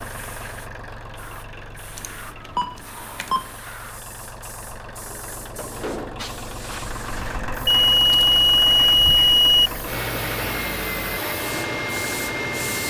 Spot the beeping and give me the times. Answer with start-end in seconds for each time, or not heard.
1.9-3.5, 7.7-9.7.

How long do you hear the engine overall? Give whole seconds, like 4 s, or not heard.
13 s.